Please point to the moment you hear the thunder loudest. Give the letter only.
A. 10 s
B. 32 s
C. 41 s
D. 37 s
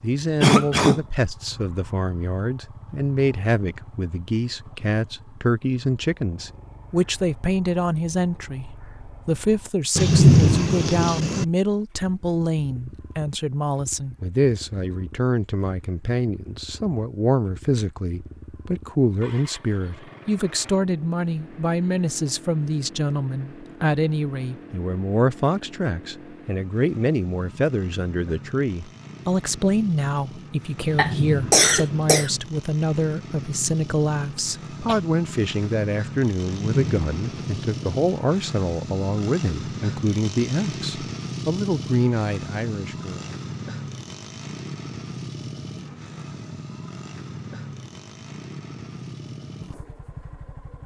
A.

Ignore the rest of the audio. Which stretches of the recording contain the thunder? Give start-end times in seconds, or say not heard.
9.9-11.4, 30.9-32.4, 36.5-38.0.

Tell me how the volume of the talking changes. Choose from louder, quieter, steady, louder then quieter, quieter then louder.
steady.